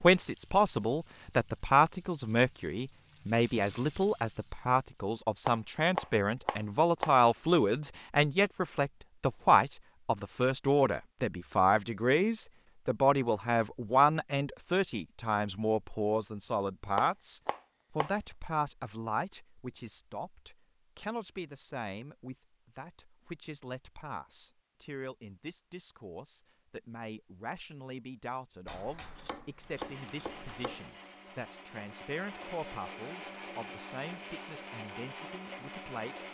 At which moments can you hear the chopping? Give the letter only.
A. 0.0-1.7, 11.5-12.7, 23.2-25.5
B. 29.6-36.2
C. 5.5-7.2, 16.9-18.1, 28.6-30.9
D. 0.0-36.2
C.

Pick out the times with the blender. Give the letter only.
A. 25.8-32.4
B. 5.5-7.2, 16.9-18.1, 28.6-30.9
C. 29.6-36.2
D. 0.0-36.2
C.